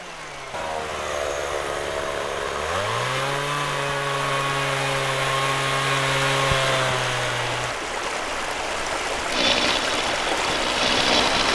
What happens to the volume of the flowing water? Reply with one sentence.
The volume of the flowing water goes up.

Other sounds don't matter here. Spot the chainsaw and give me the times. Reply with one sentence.
You can hear the chainsaw from 0.0 to 7.8 s and from 9.3 to 11.5 s.